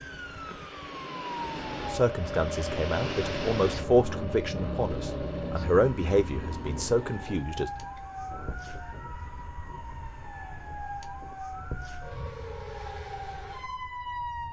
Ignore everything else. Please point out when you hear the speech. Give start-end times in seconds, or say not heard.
1.9-7.7.